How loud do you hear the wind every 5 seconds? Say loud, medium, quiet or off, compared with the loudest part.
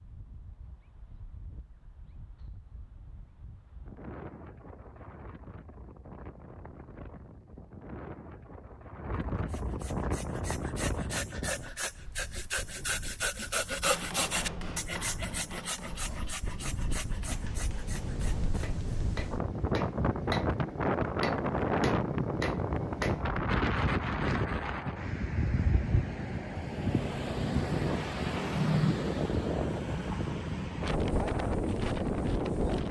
quiet, quiet, medium, medium, loud, loud, loud.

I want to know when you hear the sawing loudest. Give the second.
14 s.